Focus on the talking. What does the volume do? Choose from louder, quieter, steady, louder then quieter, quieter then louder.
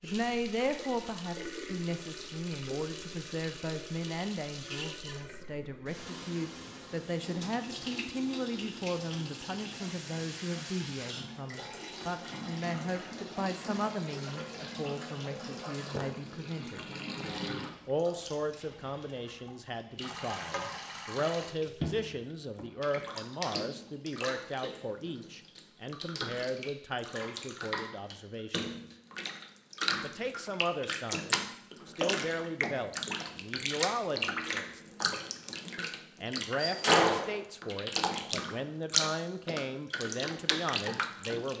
steady.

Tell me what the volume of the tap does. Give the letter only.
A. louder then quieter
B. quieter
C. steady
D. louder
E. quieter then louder
D.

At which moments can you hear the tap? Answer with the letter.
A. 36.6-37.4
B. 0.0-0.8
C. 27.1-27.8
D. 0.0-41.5
D.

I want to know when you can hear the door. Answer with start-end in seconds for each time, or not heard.
36.6-37.4.